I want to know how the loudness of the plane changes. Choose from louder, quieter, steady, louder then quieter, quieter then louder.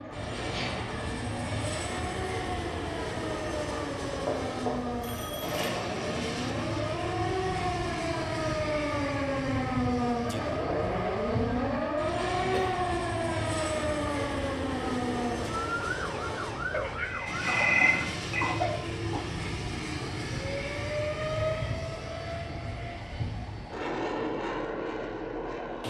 steady.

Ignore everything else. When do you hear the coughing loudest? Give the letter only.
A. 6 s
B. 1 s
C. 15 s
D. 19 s
D.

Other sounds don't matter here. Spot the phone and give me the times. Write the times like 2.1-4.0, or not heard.
4.2-5.9, 17.0-18.4.